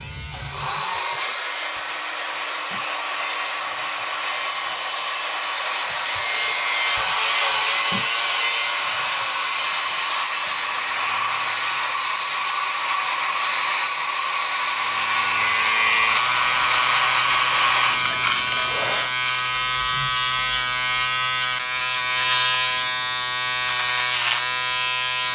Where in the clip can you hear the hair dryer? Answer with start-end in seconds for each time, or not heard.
0.0-19.1.